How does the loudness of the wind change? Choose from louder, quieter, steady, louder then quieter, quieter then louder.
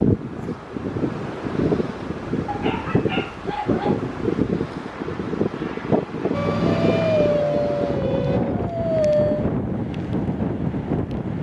steady.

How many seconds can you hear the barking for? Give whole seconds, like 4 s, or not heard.
4 s.